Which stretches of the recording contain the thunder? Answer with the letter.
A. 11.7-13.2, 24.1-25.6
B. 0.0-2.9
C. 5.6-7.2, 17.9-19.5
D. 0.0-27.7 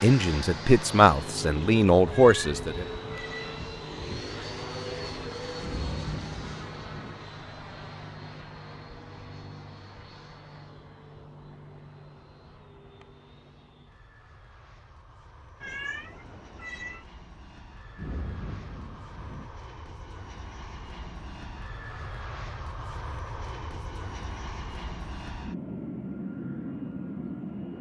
C.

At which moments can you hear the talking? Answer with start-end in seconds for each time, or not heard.
0.0-2.9.